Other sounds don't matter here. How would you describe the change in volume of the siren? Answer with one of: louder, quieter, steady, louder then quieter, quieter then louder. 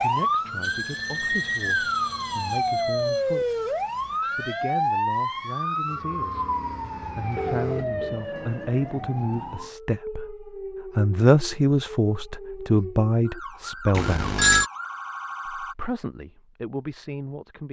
quieter.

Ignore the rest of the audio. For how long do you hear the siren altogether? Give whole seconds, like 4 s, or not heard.
16 s.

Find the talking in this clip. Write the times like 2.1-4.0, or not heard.
0.0-6.5, 7.0-14.3, 15.6-17.6.